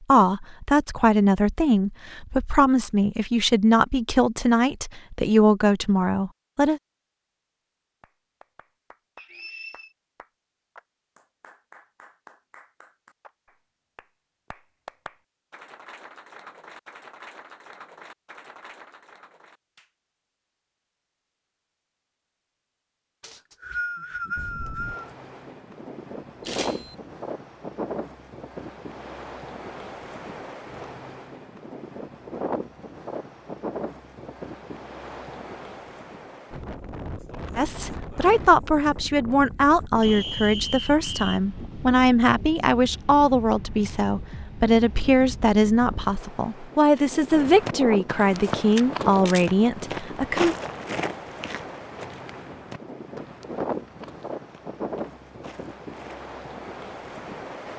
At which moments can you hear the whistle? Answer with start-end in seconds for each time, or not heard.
9.2-9.9, 23.2-25.1, 40.0-41.4.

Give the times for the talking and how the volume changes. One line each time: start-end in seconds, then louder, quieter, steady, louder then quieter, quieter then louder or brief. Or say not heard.
0.1-6.8 steady
37.5-50.5 steady.